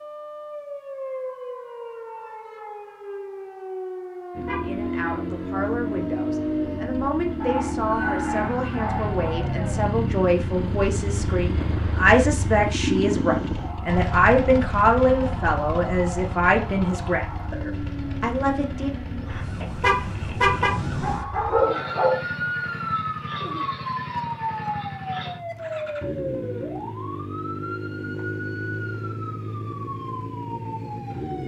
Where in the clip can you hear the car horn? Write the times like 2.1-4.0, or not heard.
4.5-5.2, 19.8-20.8.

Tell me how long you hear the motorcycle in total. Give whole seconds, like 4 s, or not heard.
27 s.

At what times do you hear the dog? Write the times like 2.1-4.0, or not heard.
7.4-9.4, 20.6-22.2.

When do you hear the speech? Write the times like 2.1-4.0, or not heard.
4.7-18.9.